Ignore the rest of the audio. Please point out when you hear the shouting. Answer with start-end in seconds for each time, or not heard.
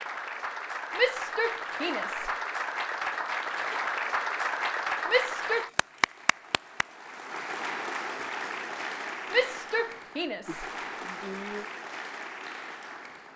0.9-2.3, 5.0-5.7, 9.3-11.7.